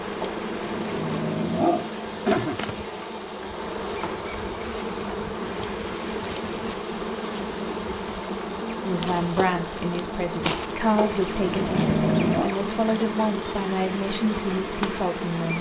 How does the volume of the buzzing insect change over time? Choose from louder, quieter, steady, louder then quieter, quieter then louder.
steady.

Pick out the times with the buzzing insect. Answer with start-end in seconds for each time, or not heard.
0.0-15.5.